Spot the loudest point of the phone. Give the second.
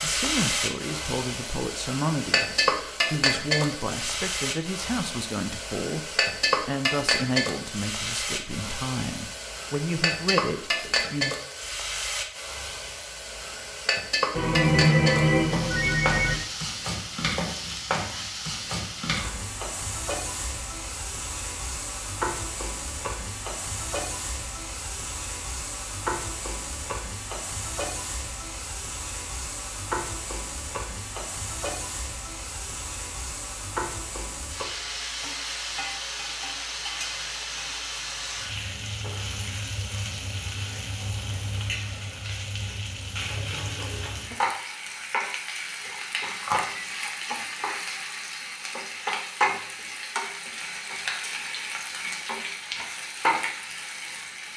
15 s.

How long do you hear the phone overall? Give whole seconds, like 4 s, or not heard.
3 s.